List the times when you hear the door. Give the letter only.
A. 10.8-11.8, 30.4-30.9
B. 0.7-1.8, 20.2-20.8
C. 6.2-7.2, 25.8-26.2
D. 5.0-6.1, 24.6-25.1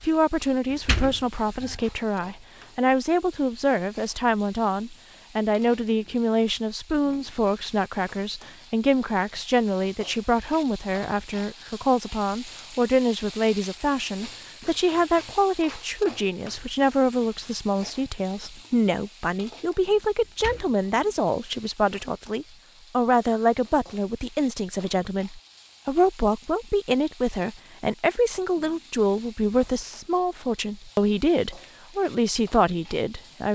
B.